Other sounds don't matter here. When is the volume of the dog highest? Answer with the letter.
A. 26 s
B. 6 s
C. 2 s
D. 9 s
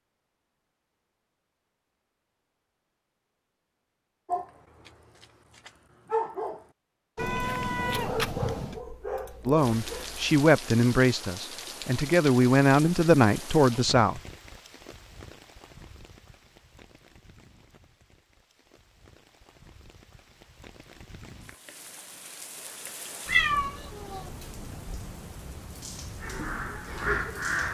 B.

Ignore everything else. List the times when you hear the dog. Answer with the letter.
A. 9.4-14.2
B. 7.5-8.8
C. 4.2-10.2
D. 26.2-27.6
C.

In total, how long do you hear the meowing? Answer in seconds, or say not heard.
3 s.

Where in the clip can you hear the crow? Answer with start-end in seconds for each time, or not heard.
26.2-27.6.